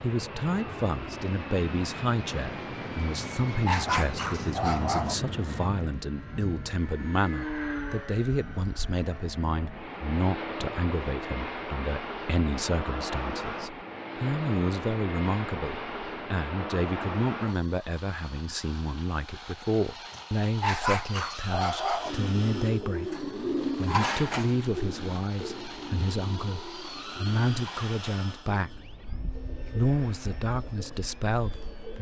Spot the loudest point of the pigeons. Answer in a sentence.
The loudest moment of the pigeons is at 24 seconds.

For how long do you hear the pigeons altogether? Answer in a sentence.
The pigeons can be heard for 10 seconds in total.